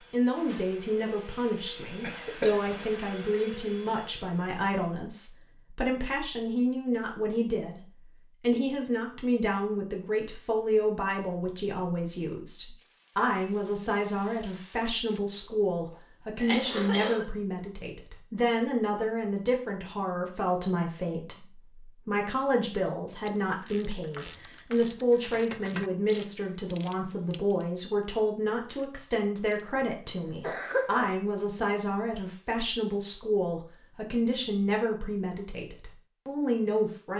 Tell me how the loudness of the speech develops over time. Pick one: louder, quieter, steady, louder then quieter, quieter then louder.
steady.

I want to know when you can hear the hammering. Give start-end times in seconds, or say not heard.
not heard.